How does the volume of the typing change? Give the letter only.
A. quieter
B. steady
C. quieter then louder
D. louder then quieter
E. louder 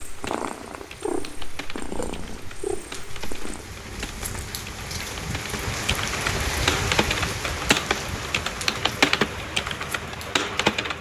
E.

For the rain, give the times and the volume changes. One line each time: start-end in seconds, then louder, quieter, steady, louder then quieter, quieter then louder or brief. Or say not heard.
0.0-10.9 louder then quieter.